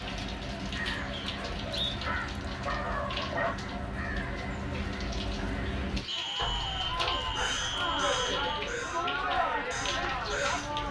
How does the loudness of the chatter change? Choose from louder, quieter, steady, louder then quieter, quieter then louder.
louder.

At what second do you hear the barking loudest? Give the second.
3 s.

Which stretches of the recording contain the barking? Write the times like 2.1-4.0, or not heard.
1.2-3.5, 6.3-7.7.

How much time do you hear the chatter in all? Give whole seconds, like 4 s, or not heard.
11 s.